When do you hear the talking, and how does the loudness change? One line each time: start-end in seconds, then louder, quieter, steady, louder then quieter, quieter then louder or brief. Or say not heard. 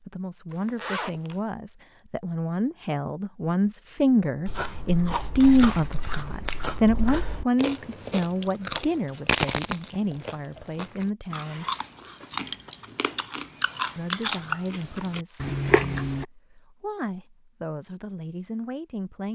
0.0-11.7 louder then quieter
13.9-19.2 quieter then louder.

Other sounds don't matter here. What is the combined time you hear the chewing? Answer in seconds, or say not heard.
12 s.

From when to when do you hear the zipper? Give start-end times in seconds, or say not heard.
0.5-1.4.